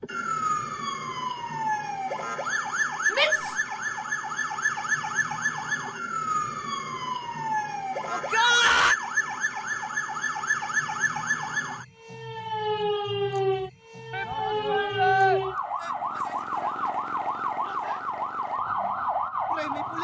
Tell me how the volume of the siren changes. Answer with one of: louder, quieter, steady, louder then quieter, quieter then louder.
steady.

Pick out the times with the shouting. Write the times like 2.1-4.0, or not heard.
3.1-3.5, 8.1-8.9, 14.1-15.4.